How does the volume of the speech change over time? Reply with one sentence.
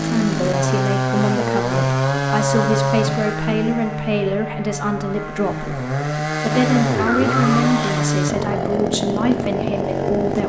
The volume of the speech stays about the same.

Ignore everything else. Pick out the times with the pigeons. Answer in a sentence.
The pigeons can be heard from 6.5 to 8.1 s.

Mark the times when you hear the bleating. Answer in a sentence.
You can't hear the bleating here.